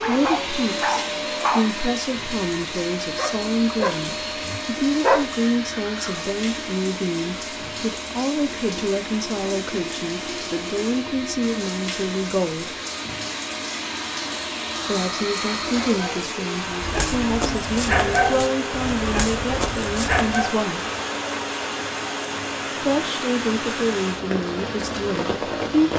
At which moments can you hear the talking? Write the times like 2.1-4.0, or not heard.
0.0-12.8, 14.8-20.9, 22.8-25.9.